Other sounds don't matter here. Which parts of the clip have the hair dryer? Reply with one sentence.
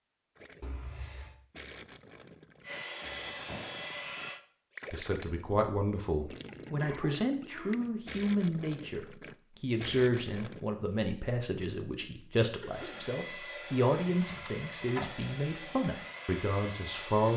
The hair dryer can be heard from 2.6 to 4.4 s and from 12.7 to 17.3 s.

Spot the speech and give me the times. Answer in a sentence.
You can hear the speech from 4.9 to 17.3 s.